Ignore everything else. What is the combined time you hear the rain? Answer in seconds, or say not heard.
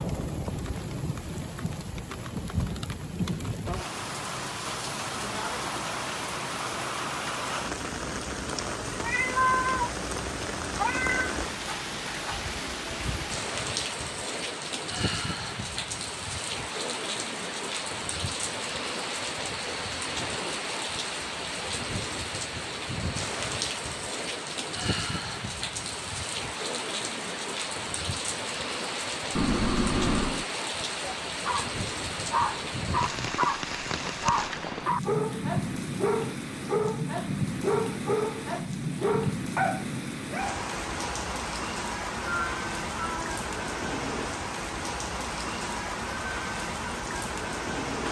48 s.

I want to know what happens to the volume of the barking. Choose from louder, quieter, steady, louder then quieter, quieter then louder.
steady.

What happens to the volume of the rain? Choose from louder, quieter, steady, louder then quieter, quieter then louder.
steady.